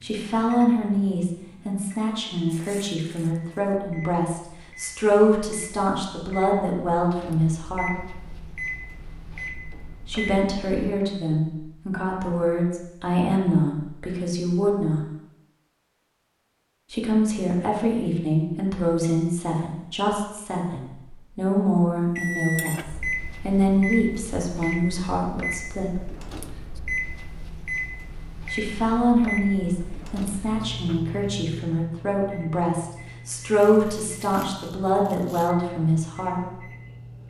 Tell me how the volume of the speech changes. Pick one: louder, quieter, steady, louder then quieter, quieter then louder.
steady.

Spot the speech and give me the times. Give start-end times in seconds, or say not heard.
0.0-8.2, 10.1-15.1, 16.9-25.9, 28.5-36.4.